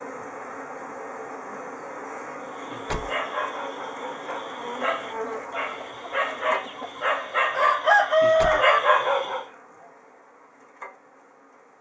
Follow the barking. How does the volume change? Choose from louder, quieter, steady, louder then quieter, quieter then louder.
louder.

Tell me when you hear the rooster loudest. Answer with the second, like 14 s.
8 s.